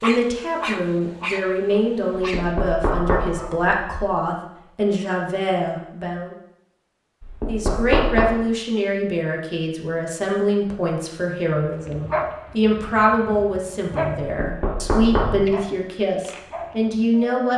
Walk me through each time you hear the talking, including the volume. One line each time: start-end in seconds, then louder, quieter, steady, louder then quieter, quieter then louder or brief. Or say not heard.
0.0-6.3 steady
7.5-17.5 steady.